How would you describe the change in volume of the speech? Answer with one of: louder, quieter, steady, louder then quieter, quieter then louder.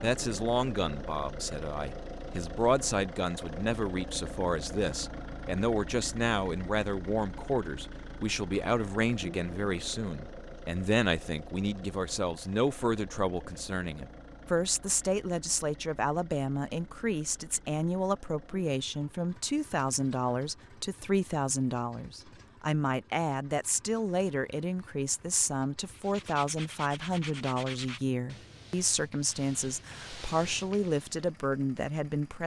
steady.